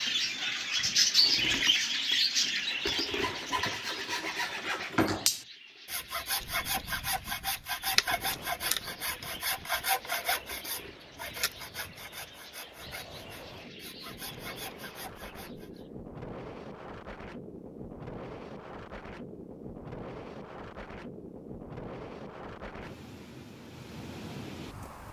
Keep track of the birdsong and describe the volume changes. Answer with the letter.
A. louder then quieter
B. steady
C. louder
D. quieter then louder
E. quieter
E.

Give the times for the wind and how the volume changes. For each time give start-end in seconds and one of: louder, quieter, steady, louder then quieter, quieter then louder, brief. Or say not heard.
6.4-25.0 louder.